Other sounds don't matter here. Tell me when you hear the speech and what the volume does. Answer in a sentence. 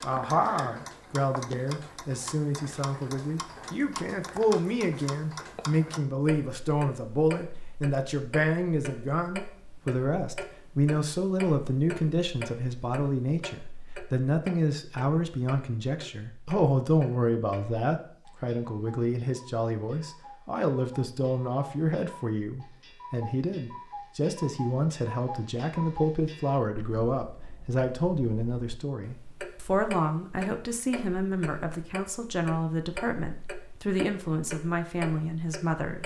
You can hear the speech from 0.0 to 36.0 s, at a steady volume.